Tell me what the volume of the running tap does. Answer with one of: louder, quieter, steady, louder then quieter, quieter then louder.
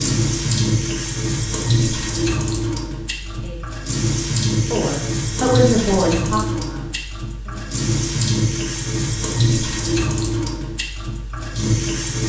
steady.